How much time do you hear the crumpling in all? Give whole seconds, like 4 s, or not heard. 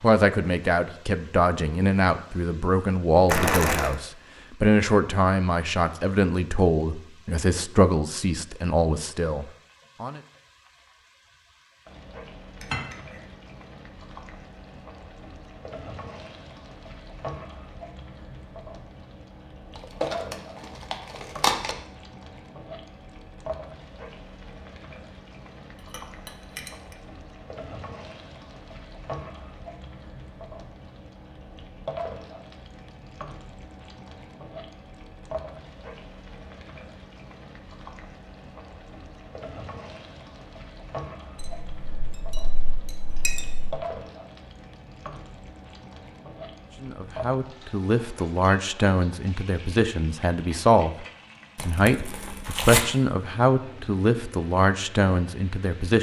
4 s.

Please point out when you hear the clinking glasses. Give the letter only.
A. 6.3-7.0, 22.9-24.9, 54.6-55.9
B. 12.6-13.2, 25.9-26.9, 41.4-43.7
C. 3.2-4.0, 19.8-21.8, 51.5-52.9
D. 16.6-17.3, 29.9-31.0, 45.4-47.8
B.